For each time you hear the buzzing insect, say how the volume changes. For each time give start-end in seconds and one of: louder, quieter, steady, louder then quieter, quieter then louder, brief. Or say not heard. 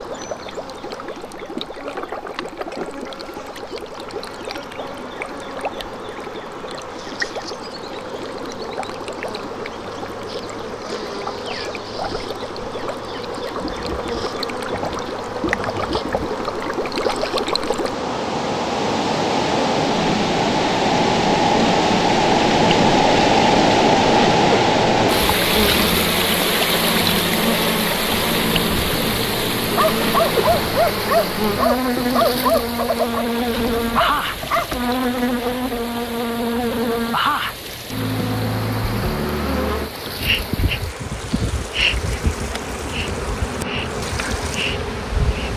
0.0-45.5 louder.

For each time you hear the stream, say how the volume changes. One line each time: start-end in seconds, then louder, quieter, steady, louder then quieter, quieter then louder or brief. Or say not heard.
0.0-45.5 louder then quieter.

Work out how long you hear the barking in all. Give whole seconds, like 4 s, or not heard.
5 s.